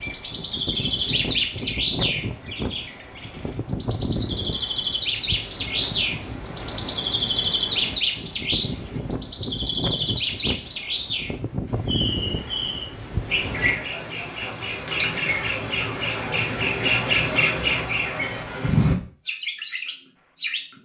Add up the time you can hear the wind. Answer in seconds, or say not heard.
14 s.